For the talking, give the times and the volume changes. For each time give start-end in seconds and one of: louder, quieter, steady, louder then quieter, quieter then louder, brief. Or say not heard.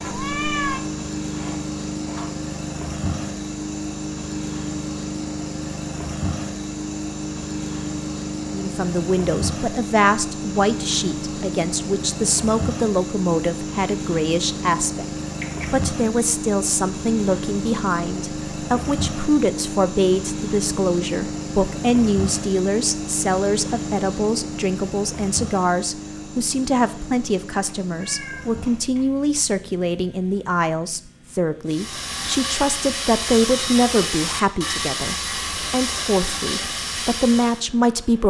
8.5-15.1 steady
15.7-38.2 steady.